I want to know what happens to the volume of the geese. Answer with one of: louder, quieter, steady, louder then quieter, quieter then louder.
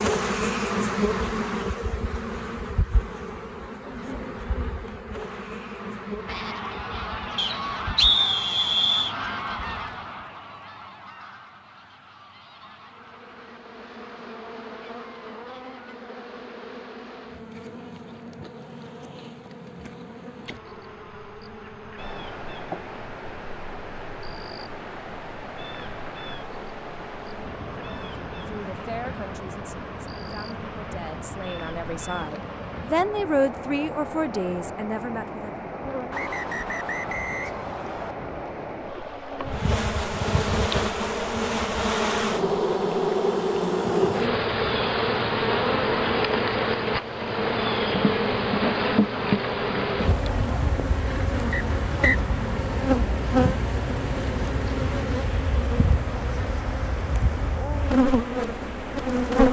quieter.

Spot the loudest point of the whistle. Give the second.
8 s.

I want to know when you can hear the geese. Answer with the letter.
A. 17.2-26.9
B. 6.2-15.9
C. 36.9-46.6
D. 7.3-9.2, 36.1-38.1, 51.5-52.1
B.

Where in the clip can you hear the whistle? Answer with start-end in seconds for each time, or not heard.
7.3-9.2, 36.1-38.1, 51.5-52.1.